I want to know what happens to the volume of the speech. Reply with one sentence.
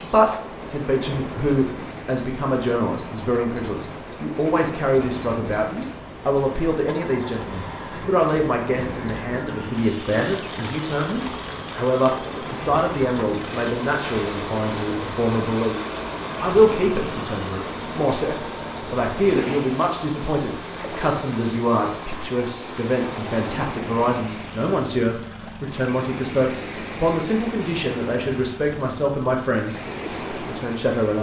The volume of the speech stays about the same.